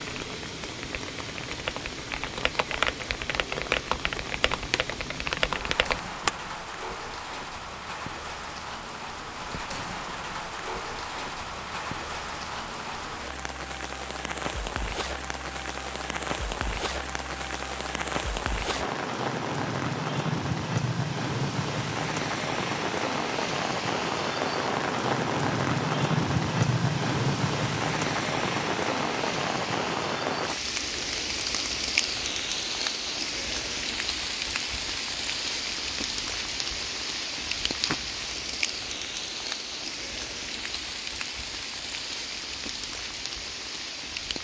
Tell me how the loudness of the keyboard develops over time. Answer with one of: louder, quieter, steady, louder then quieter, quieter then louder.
louder.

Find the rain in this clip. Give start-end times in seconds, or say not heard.
0.0-44.3.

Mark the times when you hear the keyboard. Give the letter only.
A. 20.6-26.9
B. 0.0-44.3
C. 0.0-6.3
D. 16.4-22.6
C.